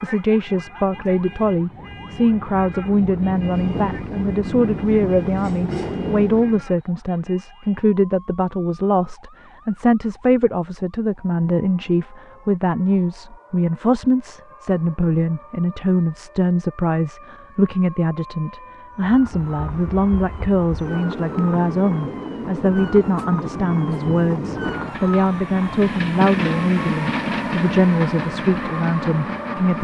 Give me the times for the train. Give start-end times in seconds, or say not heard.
0.2-6.7, 18.9-29.8.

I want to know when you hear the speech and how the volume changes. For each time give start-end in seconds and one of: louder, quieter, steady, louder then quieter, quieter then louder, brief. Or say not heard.
0.0-29.8 steady.